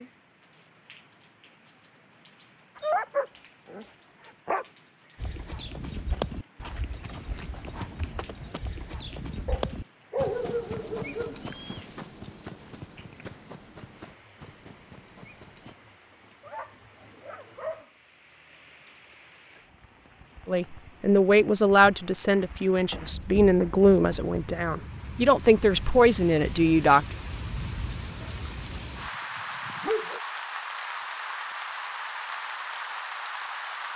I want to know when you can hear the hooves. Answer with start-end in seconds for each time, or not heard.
5.2-15.8.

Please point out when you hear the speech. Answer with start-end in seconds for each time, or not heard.
20.4-27.1.